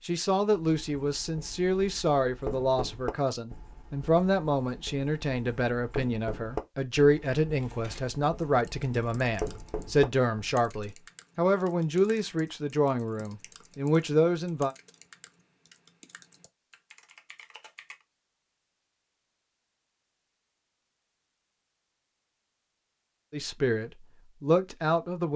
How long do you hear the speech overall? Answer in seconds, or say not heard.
17 s.